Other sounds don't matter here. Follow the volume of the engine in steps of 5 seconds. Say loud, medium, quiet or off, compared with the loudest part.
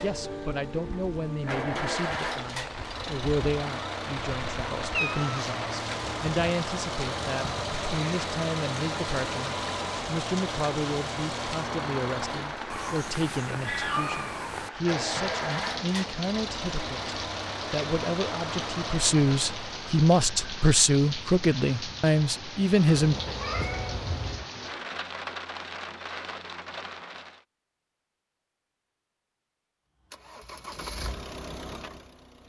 loud, loud, loud, loud, off, off, medium.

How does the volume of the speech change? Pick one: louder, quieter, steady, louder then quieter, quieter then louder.
louder.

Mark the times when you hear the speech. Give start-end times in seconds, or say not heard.
0.0-23.1.